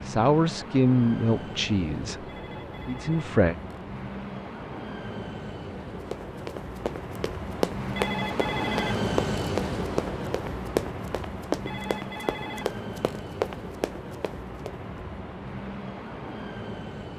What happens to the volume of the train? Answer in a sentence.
The volume of the train goes up, then down.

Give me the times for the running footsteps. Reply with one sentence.
The running footsteps can be heard from 6.1 to 14.8 s.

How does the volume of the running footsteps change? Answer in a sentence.
The loudness of the running footsteps stays about the same.